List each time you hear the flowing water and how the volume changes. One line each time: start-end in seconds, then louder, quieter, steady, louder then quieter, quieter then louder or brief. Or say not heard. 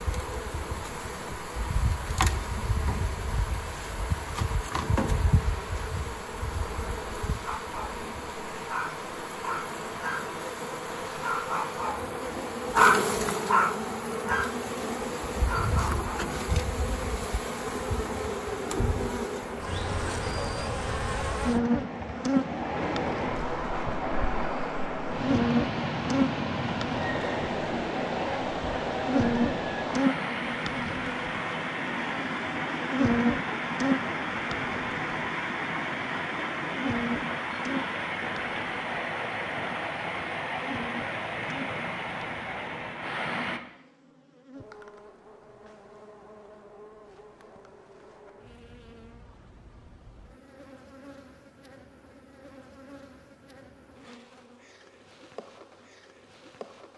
0.0-43.6 louder.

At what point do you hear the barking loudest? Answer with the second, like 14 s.
13 s.